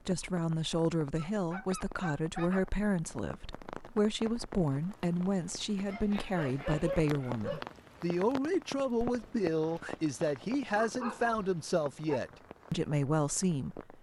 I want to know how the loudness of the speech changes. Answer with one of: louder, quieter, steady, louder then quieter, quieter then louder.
steady.